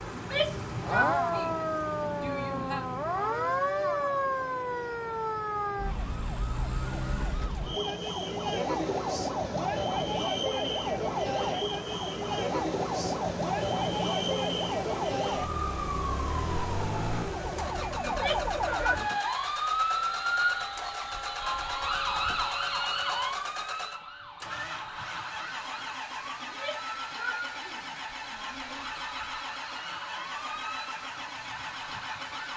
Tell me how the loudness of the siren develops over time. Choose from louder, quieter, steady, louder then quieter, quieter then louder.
quieter.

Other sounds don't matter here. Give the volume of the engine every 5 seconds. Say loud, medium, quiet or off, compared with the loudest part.
loud, medium, loud, loud, loud, loud, loud.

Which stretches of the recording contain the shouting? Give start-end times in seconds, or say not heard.
0.1-2.9, 18.0-19.3, 26.4-28.9.